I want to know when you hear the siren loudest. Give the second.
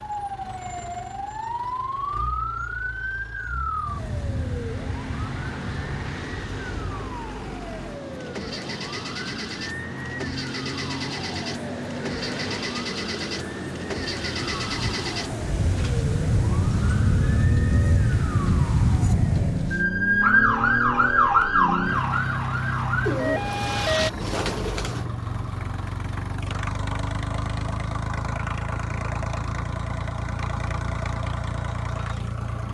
21 s.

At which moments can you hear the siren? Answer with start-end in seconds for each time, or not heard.
0.0-24.1.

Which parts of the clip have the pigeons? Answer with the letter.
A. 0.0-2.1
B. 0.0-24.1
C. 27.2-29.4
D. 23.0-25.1
D.